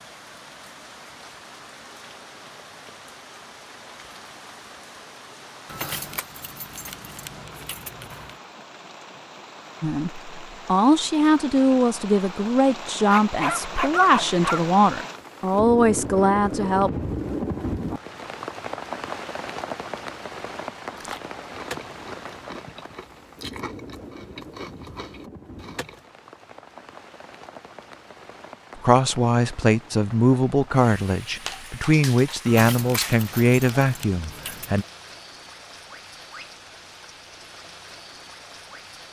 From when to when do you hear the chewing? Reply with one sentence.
The chewing can be heard from 20.9 to 26.1 s.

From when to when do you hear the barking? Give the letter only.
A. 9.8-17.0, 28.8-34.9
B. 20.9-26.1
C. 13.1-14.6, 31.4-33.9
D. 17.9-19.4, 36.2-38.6
C.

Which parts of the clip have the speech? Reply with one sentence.
The speech can be heard from 9.8 to 17.0 s and from 28.8 to 34.9 s.